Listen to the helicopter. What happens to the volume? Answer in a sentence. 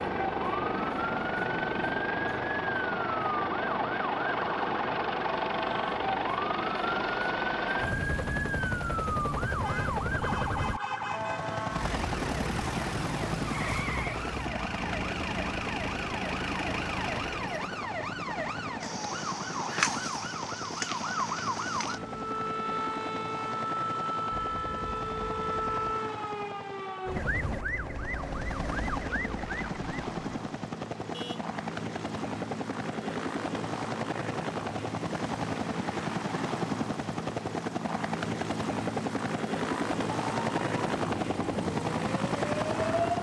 The loudness of the helicopter goes down, then up.